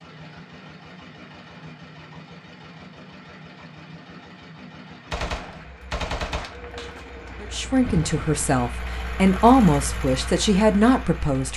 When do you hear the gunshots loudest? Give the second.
6 s.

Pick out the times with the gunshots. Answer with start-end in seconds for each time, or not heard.
5.1-8.4.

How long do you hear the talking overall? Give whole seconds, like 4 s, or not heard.
4 s.